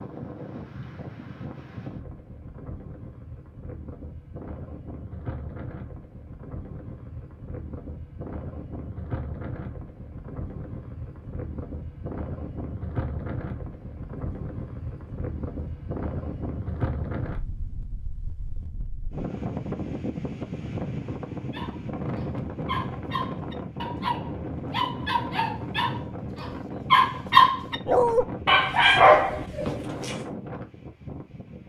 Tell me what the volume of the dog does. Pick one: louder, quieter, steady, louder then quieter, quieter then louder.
louder.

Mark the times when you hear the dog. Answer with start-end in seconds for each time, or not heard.
21.5-30.1.